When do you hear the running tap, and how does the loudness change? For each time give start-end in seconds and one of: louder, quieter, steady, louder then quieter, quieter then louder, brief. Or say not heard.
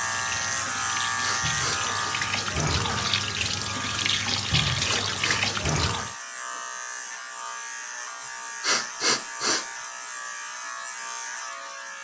0.0-6.2 louder.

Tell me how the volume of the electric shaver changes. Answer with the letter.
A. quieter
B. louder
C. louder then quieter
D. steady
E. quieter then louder
A.